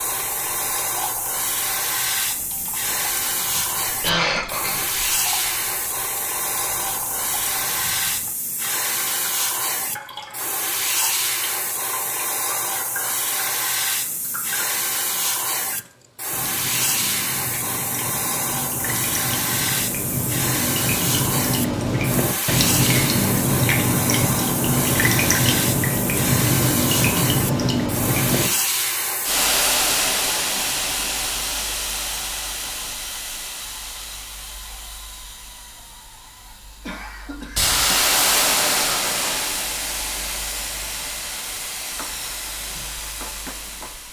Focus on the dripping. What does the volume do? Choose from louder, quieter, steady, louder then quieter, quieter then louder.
louder.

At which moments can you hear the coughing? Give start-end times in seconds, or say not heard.
3.9-5.1, 36.9-38.0.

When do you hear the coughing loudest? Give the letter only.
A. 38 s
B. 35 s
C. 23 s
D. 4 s
D.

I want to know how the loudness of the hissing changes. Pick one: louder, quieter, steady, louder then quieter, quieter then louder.
steady.